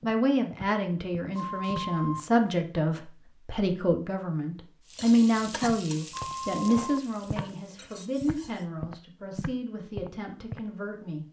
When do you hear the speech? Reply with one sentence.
You can hear the speech from 0.0 to 11.2 s.